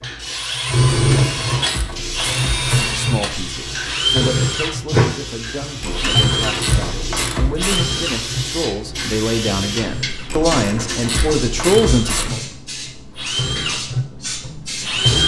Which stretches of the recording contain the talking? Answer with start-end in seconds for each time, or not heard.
2.8-12.4.